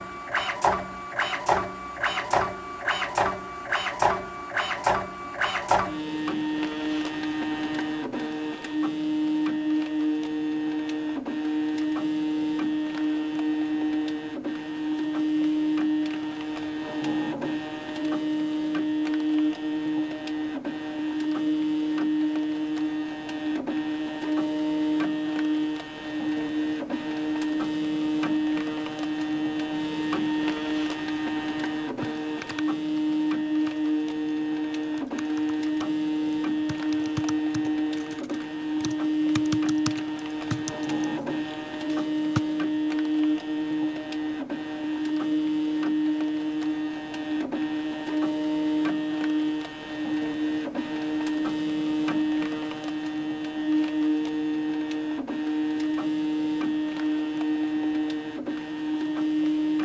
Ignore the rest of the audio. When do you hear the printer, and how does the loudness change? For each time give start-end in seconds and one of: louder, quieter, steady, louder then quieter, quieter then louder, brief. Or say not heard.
0.0-59.8 steady.